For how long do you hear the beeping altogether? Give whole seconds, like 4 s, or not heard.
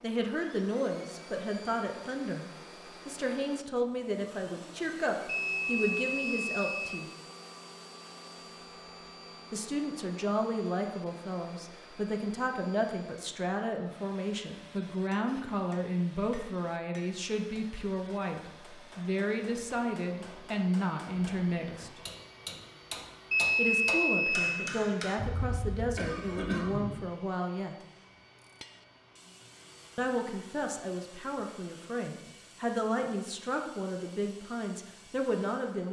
3 s.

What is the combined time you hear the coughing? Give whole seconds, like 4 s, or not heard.
2 s.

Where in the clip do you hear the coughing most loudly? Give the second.
27 s.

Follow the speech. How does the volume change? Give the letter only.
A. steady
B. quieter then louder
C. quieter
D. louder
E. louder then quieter
A.